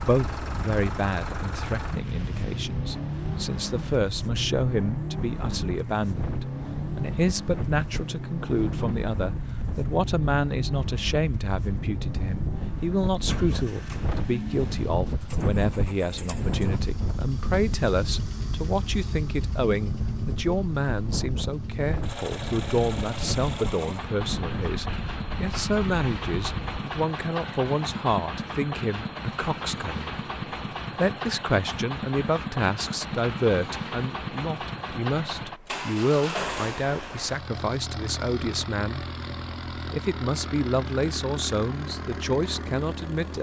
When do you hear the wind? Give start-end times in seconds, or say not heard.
0.1-26.8.